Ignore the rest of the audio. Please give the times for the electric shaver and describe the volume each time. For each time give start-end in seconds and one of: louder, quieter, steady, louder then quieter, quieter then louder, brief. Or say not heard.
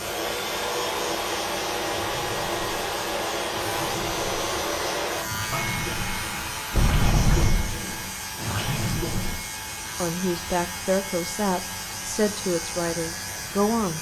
0.0-13.9 steady.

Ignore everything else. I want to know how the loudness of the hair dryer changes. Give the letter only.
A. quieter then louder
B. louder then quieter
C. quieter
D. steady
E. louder
C.